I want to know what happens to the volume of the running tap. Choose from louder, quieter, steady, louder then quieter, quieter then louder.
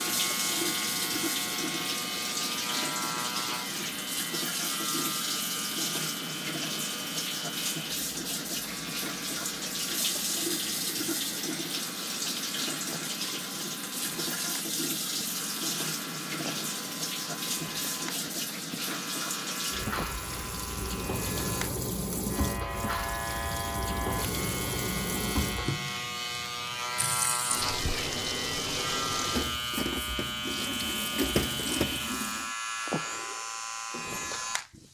steady.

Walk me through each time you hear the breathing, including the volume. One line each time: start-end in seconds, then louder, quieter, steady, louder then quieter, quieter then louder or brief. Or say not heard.
not heard.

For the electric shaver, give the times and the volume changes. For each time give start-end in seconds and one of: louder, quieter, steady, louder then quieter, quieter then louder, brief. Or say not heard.
0.0-34.8 quieter then louder.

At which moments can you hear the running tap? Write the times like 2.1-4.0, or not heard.
0.0-32.5.